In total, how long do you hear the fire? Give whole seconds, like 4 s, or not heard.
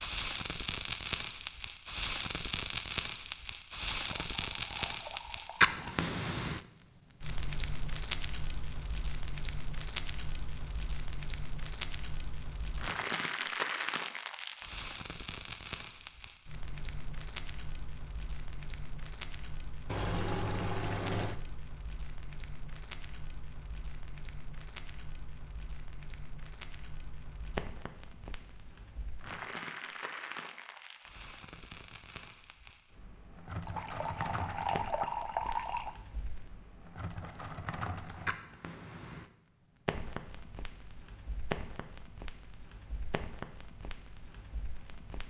45 s.